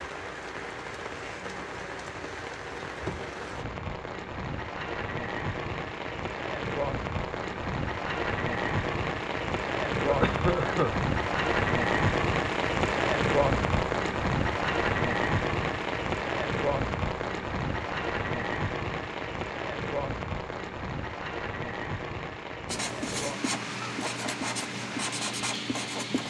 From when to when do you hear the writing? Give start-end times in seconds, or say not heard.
22.6-26.2.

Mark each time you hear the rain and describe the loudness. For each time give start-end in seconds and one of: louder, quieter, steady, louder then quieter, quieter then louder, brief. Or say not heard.
0.0-26.2 louder then quieter.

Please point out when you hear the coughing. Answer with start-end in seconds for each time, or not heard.
10.0-10.9.